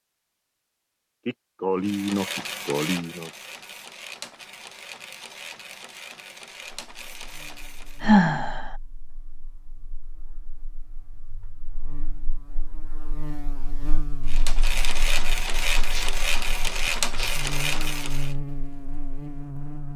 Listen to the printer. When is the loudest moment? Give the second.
17 s.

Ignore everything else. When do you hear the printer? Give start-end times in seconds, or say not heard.
1.8-8.1, 14.2-18.4.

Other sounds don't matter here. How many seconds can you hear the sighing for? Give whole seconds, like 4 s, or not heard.
4 s.